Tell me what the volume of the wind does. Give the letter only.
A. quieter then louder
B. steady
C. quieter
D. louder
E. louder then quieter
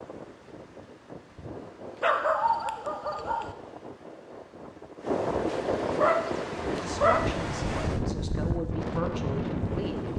D.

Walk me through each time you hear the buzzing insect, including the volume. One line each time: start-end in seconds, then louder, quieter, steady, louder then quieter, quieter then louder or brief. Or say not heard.
not heard.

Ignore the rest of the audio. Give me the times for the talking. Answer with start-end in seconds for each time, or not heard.
6.7-10.1.